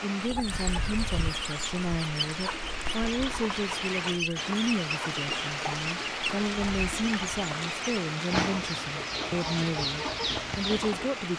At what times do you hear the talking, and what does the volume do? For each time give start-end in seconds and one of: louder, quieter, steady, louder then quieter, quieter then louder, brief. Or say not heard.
0.0-11.3 steady.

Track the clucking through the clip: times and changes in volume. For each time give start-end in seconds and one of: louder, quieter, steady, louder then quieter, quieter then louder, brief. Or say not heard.
0.2-11.1 steady.